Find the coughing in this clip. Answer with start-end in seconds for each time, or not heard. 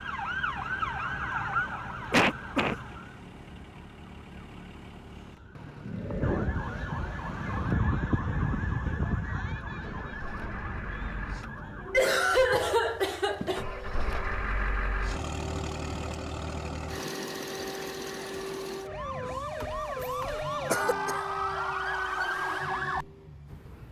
2.1-2.8, 11.9-13.7, 19.6-21.2.